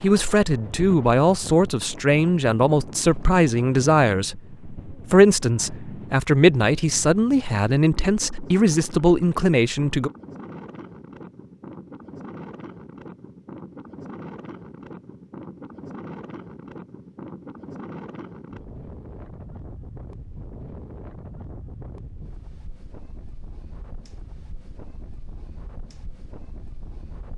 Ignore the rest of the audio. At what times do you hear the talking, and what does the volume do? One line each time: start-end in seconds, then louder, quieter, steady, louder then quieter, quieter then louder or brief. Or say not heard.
0.0-10.1 steady.